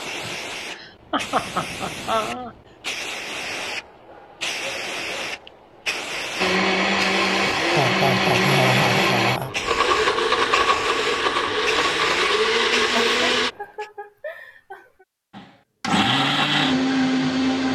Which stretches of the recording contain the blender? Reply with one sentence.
The blender can be heard from 6.3 to 13.5 s and from 15.3 to 17.7 s.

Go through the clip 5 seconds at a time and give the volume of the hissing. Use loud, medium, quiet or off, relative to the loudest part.
loud, loud, loud, off.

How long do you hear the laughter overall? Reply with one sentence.
The laughter can be heard for 6 seconds in total.